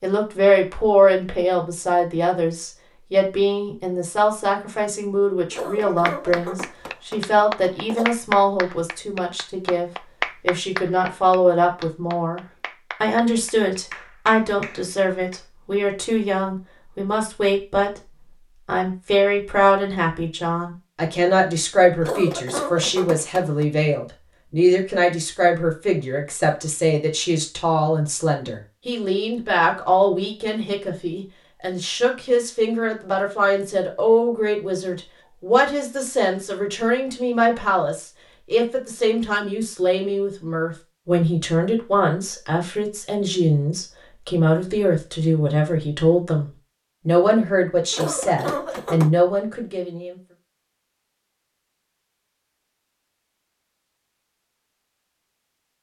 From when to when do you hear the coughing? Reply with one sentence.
The coughing can be heard from 5.5 to 8.1 s, from 22.0 to 23.6 s and from 47.9 to 49.1 s.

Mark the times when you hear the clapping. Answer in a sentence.
The clapping can be heard from 5.8 to 15.4 s.